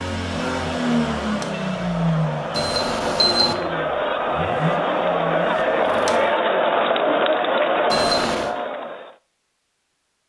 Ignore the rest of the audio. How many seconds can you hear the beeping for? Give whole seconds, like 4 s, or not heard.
2 s.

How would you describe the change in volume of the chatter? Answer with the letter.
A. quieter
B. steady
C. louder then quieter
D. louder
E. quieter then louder
D.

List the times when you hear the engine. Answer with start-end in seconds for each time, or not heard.
0.0-6.4.